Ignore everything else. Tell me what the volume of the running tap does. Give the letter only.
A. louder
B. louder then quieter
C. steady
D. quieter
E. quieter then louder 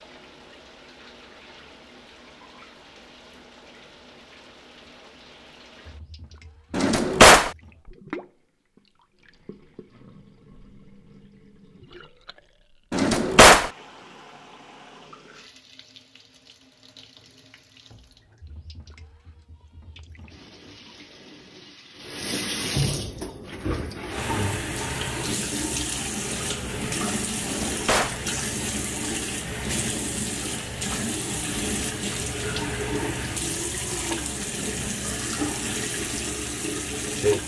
A.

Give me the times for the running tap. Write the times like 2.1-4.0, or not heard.
0.0-37.4.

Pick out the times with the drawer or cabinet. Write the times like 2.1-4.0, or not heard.
6.7-7.5, 12.9-13.7, 27.4-28.2.